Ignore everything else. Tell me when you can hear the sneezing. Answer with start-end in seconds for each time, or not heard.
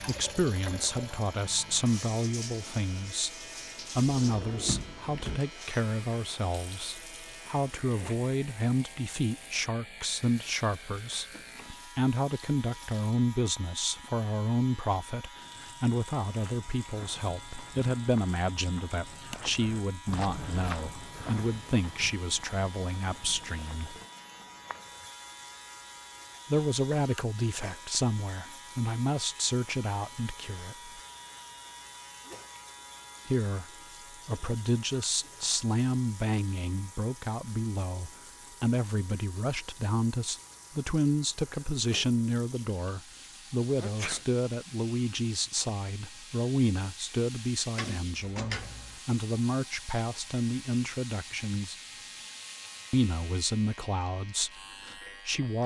43.8-44.2.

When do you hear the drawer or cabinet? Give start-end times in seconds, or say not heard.
4.0-5.4, 47.8-49.0.